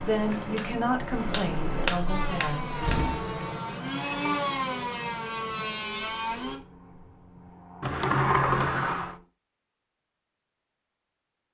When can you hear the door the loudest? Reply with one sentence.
The volume of the door peaks at 8 seconds.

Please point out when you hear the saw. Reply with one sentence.
You can hear the saw from 2.0 to 6.5 s.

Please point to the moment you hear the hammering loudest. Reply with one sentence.
The volume of the hammering peaks at 2 seconds.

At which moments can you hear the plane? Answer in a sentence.
The plane can be heard from 0.0 to 9.2 s.